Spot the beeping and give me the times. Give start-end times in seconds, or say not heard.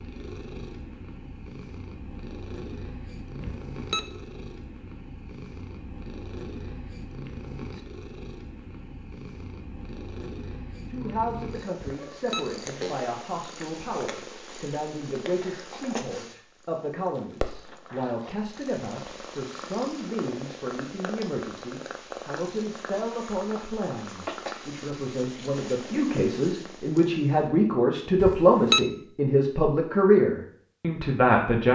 3.4-4.0, 11.8-12.9, 28.1-28.8.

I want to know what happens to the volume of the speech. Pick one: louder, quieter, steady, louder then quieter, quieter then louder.
louder.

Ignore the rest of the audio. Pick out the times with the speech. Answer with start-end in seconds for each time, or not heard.
10.8-31.7.